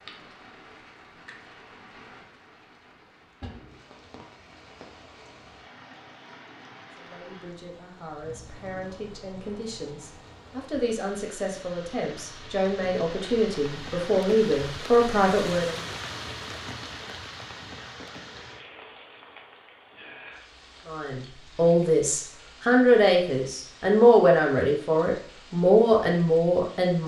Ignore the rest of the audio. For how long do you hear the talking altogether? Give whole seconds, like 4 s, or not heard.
15 s.